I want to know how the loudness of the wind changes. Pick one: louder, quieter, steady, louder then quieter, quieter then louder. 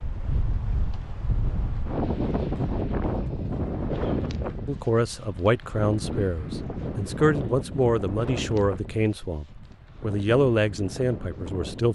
quieter.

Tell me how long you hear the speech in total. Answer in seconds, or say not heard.
7 s.